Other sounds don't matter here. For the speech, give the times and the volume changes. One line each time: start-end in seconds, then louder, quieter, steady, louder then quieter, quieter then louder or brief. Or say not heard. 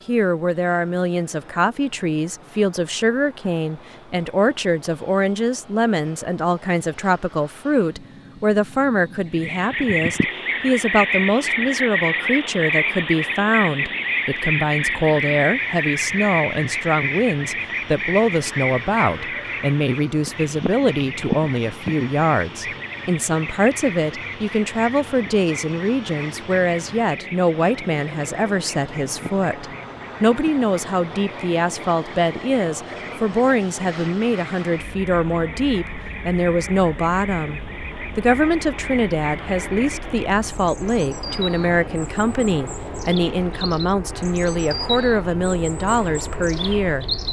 0.1-47.0 steady.